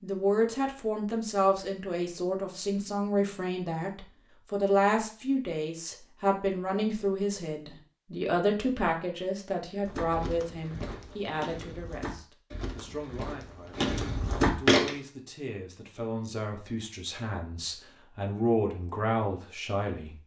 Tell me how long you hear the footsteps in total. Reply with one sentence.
The footsteps can be heard for 5 seconds in total.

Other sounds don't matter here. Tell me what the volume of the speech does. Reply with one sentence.
The volume of the speech goes down, then up.